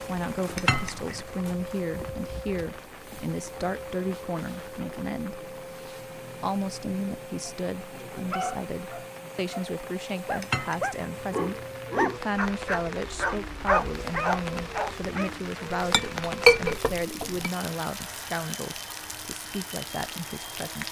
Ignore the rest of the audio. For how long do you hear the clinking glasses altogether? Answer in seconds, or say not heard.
3 s.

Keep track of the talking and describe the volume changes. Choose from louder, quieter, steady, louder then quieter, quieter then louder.
steady.